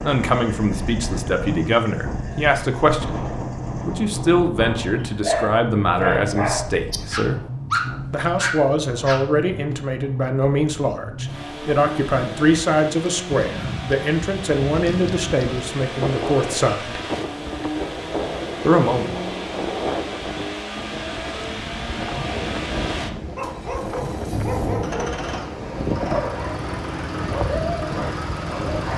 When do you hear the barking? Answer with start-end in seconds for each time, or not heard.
5.0-9.2, 23.4-28.9.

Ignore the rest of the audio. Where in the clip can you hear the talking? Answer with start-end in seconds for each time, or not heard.
0.0-7.4, 8.1-17.0, 18.6-19.1.